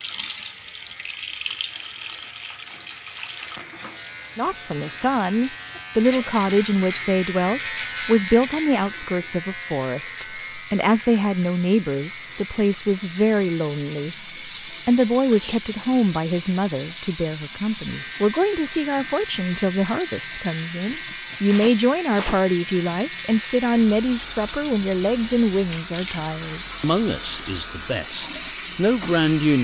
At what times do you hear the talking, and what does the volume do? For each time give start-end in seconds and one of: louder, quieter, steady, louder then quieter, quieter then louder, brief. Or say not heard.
4.3-29.5 steady.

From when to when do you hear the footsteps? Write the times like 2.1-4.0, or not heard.
not heard.